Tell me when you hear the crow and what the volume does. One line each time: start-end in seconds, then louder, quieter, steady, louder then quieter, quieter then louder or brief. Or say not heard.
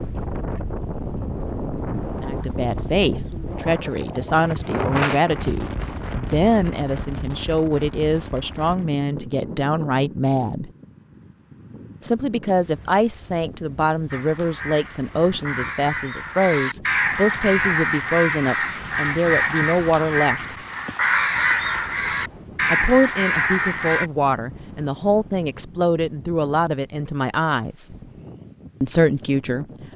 14.1-24.1 louder.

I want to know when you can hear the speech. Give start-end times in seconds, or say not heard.
2.2-10.7, 12.0-20.6, 22.7-27.9, 28.8-29.9.